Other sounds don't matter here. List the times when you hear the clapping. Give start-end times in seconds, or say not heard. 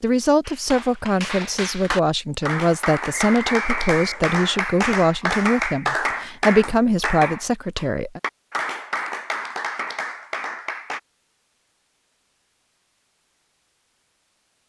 0.5-11.0.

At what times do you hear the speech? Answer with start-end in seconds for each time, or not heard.
0.0-8.2.